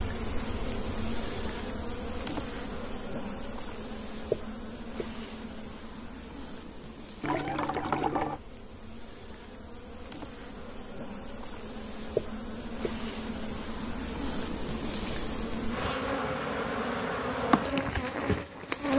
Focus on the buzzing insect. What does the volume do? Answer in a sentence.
The volume of the buzzing insect goes down, then up.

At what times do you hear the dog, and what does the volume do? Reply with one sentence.
The dog can't be heard in this clip.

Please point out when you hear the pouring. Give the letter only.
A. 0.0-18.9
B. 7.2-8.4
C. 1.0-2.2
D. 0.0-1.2
B.